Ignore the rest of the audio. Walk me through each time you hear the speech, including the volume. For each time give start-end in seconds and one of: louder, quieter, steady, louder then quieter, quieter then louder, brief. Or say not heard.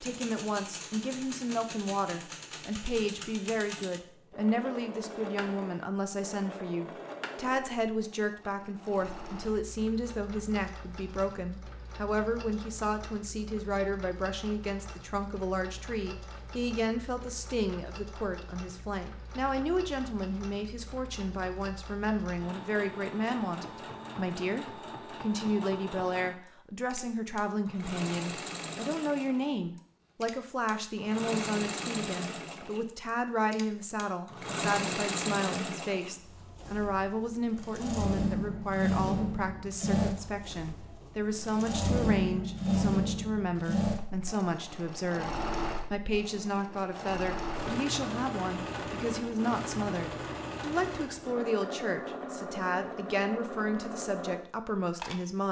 0.0-55.4 steady.